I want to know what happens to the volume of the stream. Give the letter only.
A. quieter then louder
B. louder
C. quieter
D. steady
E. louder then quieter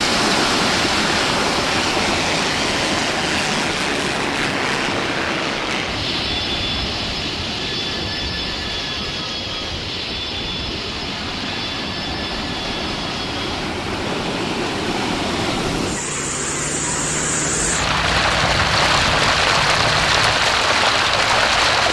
A.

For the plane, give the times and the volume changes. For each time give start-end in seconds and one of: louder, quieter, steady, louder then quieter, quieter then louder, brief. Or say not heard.
0.2-20.4 quieter.